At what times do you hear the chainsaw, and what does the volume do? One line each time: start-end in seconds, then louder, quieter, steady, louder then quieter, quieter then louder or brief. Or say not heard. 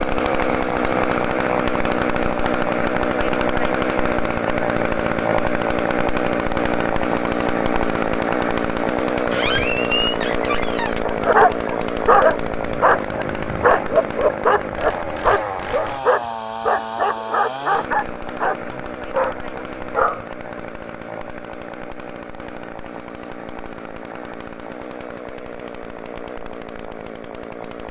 0.0-27.8 quieter.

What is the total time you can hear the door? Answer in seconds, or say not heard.
2 s.